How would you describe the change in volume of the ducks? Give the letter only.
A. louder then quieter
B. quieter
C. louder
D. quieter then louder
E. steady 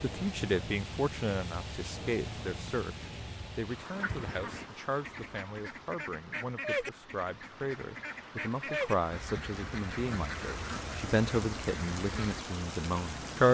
A.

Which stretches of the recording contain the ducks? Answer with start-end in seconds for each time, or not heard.
3.9-12.4.